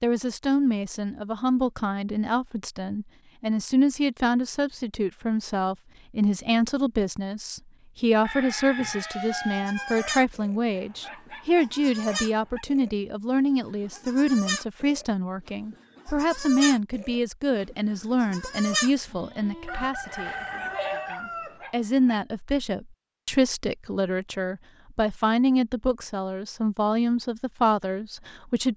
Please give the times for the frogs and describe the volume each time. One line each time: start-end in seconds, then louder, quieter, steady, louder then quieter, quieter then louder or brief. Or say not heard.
not heard.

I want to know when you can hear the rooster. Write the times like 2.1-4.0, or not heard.
8.2-10.2, 19.6-21.6.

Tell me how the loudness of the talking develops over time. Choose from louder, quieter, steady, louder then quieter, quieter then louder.
steady.